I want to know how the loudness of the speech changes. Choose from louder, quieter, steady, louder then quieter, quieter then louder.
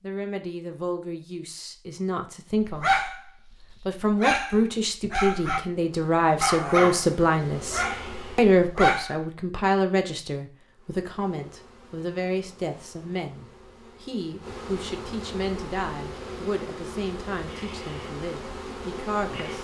louder then quieter.